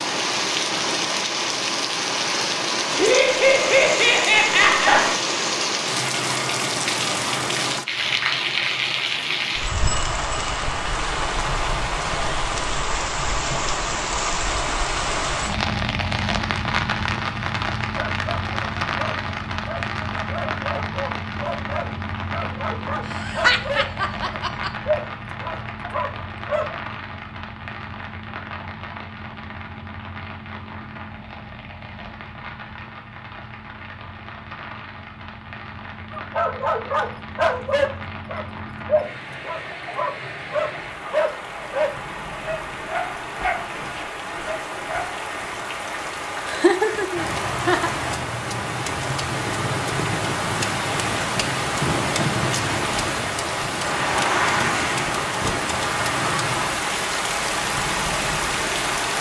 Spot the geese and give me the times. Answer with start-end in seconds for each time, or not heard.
not heard.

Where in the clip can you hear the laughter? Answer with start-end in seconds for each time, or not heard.
3.0-5.2, 23.1-24.7, 46.5-47.9.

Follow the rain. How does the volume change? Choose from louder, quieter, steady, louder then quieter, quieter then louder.
quieter then louder.